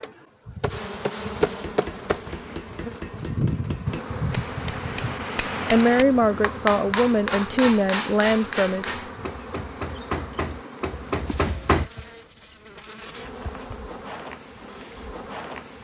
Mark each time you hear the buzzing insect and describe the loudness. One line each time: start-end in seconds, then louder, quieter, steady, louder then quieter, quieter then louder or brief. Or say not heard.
0.0-15.7 quieter.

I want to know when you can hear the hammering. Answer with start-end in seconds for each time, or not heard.
1.4-11.9.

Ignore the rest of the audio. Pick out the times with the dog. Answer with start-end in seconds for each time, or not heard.
not heard.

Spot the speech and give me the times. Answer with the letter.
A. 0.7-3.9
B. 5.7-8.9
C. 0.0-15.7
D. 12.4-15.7
B.